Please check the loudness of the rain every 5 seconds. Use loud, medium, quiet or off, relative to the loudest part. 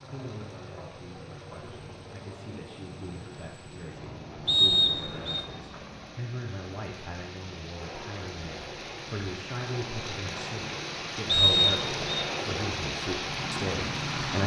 quiet, medium, loud.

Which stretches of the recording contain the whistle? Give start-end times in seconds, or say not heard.
4.5-5.5, 11.2-12.2.